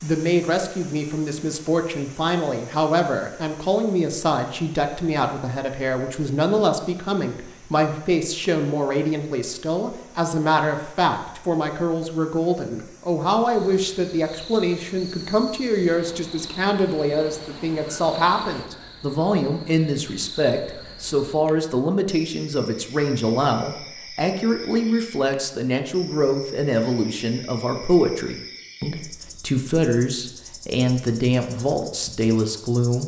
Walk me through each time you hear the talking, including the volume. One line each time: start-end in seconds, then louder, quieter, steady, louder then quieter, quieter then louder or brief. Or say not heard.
0.0-33.0 steady.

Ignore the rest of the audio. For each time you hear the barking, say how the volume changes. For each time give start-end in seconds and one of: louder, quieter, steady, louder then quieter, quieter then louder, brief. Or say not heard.
not heard.